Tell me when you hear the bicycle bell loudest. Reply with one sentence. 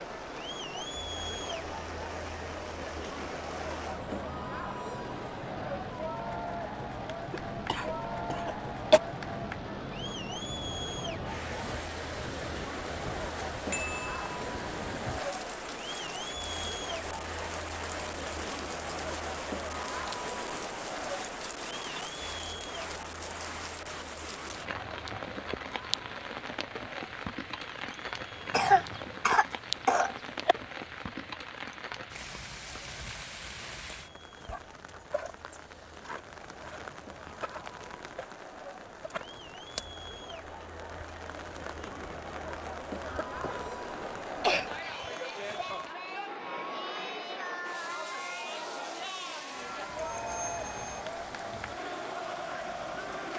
The loudest moment of the bicycle bell is at 14 seconds.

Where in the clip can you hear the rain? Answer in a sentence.
You can hear the rain from 0.0 to 53.3 s.